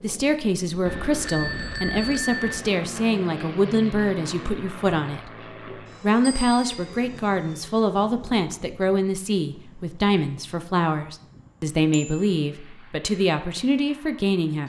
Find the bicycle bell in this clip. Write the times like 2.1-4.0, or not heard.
0.8-2.6, 6.2-7.0, 11.9-12.3.